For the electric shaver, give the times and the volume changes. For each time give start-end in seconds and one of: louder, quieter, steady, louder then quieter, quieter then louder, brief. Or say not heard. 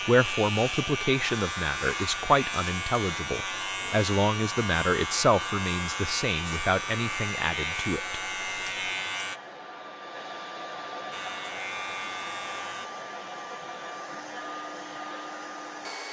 0.0-9.4 steady
11.1-12.9 brief.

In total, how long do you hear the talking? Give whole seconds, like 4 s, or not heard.
8 s.